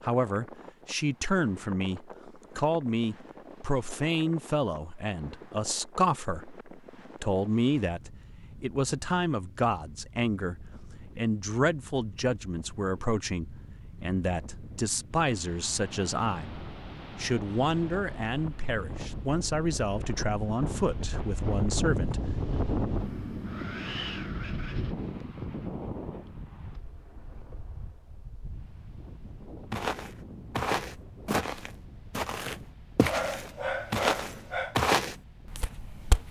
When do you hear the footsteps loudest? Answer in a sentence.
The volume of the footsteps peaks at 35 seconds.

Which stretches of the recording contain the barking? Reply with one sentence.
You can hear the barking from 33.0 to 34.8 s.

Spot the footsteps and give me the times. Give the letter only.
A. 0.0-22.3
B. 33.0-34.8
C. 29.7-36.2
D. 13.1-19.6
C.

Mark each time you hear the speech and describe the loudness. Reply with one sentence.
The speech can be heard from 0.0 to 22.3 s, at a steady volume.